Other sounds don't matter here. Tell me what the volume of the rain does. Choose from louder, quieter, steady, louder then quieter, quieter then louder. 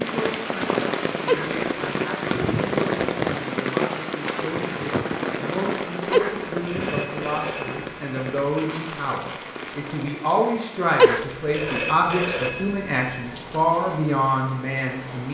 quieter.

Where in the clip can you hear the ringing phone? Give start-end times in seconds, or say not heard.
1.2-2.0, 6.1-8.7, 10.9-13.2.